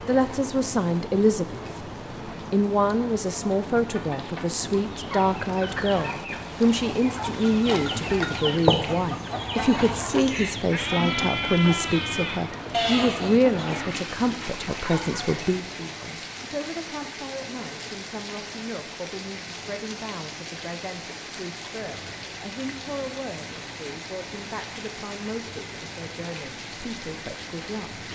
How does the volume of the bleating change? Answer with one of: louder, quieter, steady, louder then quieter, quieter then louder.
quieter then louder.